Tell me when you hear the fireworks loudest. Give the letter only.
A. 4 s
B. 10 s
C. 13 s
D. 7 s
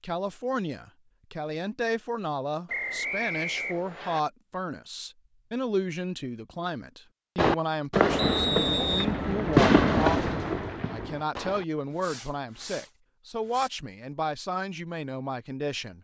B.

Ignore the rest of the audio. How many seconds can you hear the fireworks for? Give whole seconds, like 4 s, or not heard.
6 s.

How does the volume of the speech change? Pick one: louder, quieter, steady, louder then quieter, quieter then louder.
steady.